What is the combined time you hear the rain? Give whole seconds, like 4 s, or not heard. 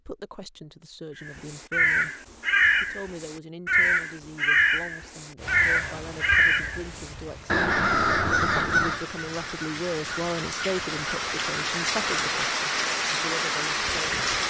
9 s.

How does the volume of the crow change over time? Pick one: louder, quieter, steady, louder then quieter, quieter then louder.
quieter.